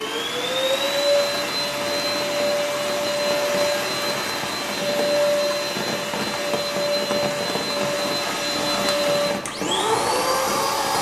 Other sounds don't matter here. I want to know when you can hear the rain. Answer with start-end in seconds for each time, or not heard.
0.0-10.9.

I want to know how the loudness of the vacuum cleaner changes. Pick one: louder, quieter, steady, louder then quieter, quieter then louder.
steady.